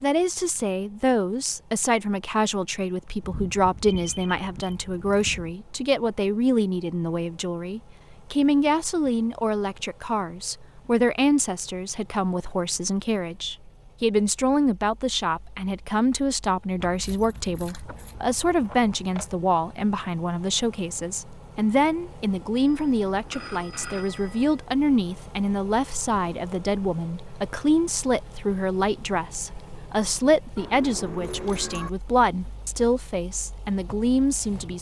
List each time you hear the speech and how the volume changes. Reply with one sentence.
You can hear the speech from 0.0 to 34.7 s, at a steady volume.